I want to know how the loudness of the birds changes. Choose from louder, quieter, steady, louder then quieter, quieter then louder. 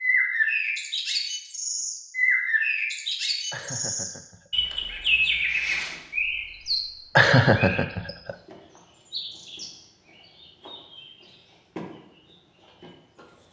quieter.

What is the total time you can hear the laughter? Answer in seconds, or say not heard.
2 s.